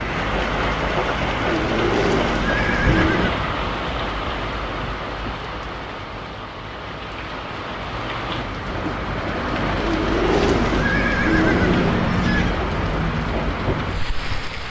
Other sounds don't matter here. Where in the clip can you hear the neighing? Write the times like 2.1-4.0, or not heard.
1.4-3.3, 9.8-12.6.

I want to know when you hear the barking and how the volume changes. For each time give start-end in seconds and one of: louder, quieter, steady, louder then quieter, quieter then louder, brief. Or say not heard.
not heard.